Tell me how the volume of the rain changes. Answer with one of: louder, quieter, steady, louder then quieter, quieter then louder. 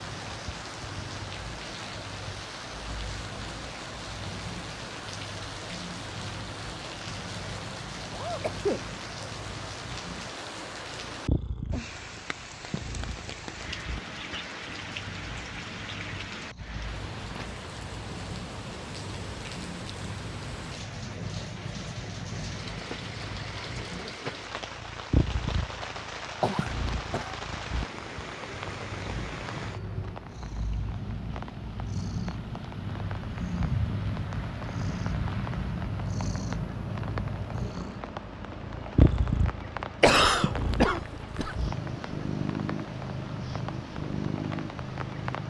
steady.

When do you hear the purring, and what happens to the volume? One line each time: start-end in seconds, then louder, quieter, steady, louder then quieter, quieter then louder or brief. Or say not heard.
0.0-45.4 louder.